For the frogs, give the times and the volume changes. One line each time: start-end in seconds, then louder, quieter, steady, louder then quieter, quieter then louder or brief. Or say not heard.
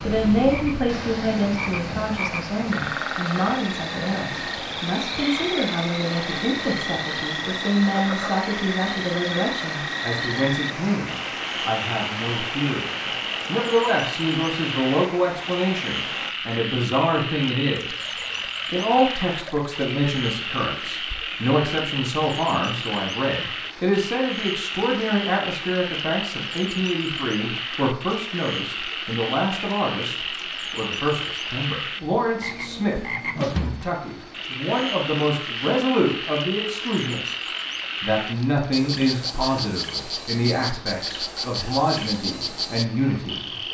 0.0-43.6 steady.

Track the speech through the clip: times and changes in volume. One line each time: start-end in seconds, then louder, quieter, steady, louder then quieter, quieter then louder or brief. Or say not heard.
0.0-43.6 steady.